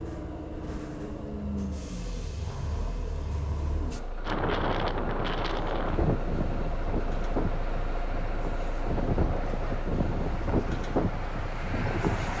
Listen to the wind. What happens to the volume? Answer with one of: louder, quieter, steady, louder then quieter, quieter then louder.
quieter then louder.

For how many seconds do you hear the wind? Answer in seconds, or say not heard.
8 s.